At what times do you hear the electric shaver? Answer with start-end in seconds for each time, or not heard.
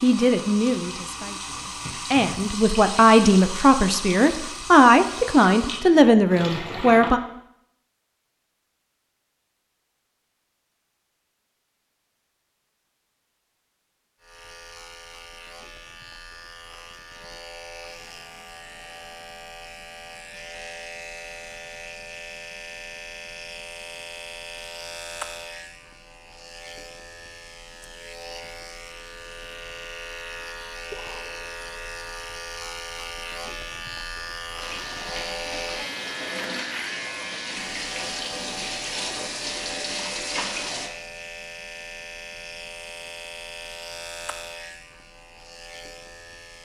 14.2-46.5.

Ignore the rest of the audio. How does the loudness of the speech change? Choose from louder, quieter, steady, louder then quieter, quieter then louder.
louder.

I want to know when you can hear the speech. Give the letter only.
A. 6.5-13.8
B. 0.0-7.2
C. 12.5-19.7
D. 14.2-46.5
B.